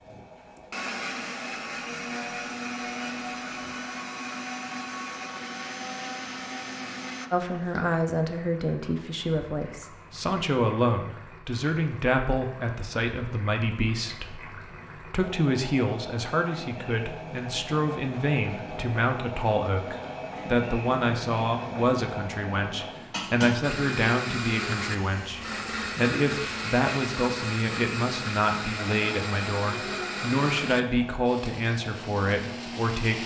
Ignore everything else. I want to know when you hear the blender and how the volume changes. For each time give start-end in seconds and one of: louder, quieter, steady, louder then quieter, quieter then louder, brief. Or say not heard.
0.0-7.3 steady
23.6-33.2 quieter.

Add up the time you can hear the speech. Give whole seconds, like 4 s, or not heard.
26 s.